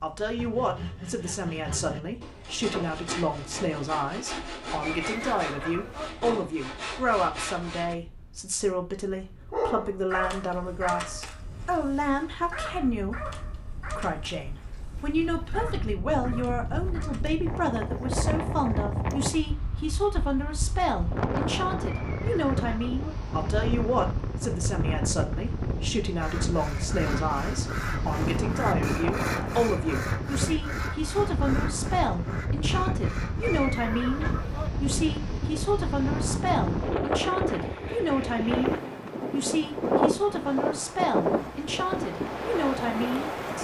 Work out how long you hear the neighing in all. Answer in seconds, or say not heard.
4 s.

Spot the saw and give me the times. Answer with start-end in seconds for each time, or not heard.
0.3-8.0, 26.1-33.8.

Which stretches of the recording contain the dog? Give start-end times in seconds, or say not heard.
9.5-17.2.